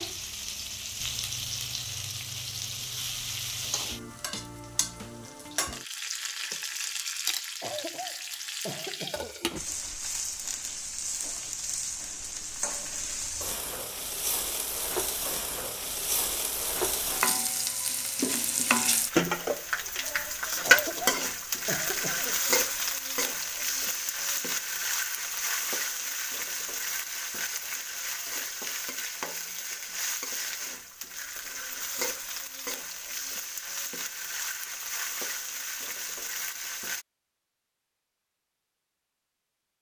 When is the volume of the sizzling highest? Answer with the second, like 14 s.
21 s.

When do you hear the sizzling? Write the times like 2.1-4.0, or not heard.
0.0-37.0.